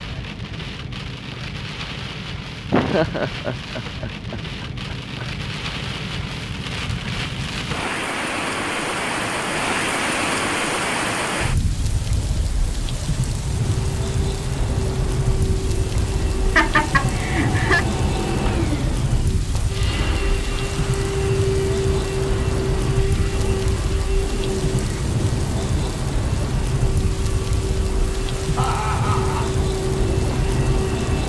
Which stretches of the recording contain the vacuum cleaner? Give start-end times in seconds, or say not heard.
13.7-31.2.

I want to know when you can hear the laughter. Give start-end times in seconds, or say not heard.
2.6-5.2, 16.6-17.9, 28.6-29.5.